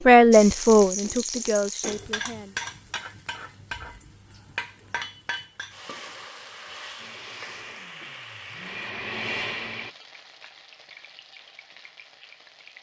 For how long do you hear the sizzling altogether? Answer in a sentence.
The sizzling can be heard for 13 seconds in total.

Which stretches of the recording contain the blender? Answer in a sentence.
The blender can be heard from 7.0 to 9.9 s.